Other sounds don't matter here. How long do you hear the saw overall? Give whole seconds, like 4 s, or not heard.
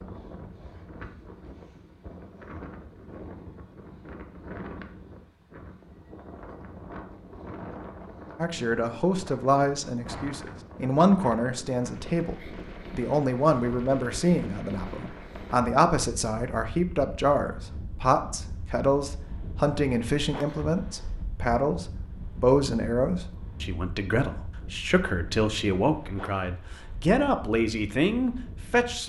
not heard.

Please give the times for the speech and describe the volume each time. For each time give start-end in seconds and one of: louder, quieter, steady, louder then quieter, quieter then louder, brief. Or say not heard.
8.3-29.0 steady.